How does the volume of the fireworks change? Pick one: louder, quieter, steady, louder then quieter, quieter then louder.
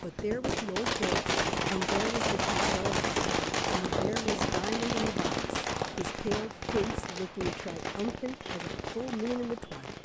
quieter.